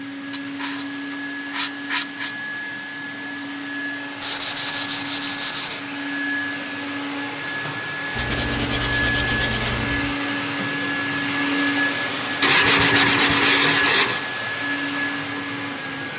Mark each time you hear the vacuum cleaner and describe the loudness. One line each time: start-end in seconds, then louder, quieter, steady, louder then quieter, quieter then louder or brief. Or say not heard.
0.0-16.1 louder.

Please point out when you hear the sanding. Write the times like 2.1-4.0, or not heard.
0.3-2.4, 4.2-5.8, 8.2-10.2, 12.4-14.2.